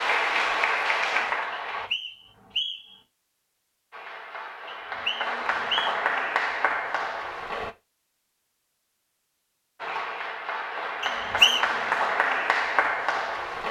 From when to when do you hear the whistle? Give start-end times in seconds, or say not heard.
1.5-3.0, 4.7-6.0, 11.0-11.7.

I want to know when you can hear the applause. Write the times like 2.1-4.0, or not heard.
0.0-1.9, 3.9-7.7, 9.8-13.6.